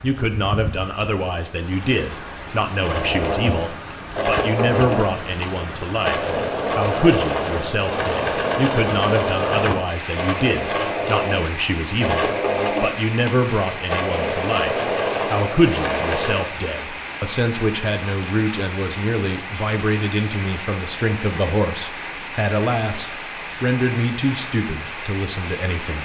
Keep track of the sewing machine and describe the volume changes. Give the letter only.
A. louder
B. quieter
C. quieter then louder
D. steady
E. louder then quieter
D.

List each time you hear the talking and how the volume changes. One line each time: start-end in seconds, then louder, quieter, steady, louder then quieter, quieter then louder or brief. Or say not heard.
0.0-26.0 steady.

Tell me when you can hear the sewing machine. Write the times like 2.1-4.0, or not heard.
2.8-16.5.